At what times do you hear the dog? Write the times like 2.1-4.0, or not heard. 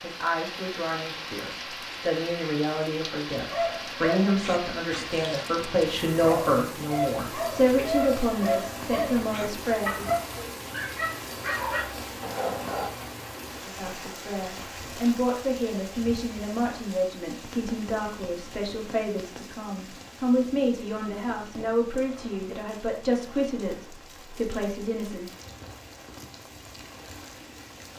3.4-12.9.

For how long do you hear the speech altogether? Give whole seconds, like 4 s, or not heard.
22 s.